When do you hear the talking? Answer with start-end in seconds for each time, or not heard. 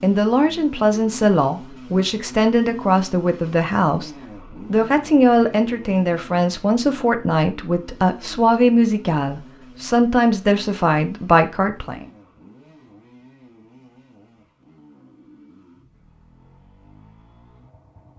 0.0-4.1, 4.7-12.1.